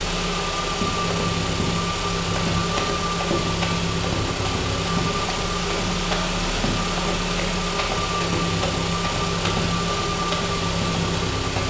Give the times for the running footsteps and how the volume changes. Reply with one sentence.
You can hear the running footsteps from 0.7 to 11.6 s, at a steady volume.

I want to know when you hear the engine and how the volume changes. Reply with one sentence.
You can hear the engine from 0.0 to 11.6 s, at a steady volume.